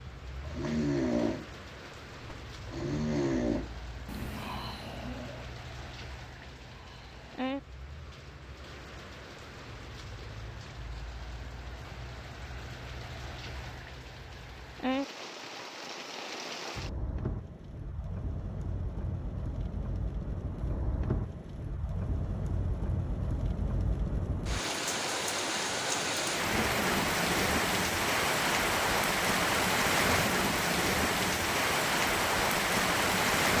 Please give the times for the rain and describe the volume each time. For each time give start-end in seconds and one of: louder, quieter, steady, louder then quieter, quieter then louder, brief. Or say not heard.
0.0-33.5 louder.